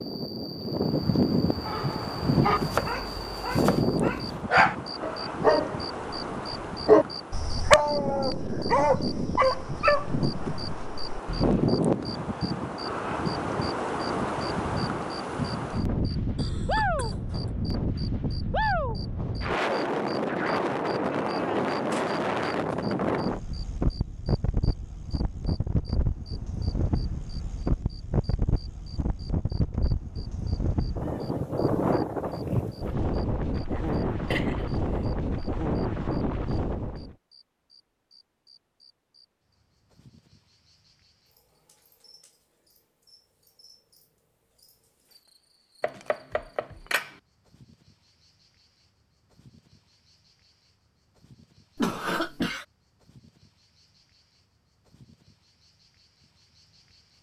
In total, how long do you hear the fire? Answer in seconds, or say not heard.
not heard.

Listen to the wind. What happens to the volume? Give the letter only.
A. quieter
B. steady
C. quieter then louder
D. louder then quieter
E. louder
B.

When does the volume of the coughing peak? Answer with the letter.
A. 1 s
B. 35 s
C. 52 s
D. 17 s
C.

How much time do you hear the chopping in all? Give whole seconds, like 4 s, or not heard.
3 s.